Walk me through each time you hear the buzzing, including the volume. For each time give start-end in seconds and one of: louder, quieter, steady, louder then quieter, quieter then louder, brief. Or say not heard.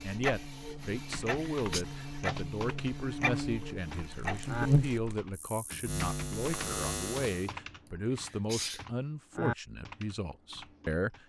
0.0-7.5 louder then quieter.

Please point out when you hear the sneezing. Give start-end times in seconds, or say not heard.
1.3-1.9, 7.8-8.8.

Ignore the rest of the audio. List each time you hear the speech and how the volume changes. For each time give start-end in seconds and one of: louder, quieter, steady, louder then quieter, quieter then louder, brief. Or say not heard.
0.0-11.2 steady.